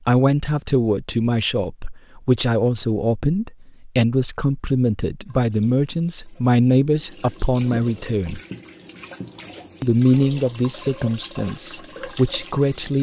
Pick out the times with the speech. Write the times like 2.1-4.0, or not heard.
0.1-8.4, 9.8-12.9.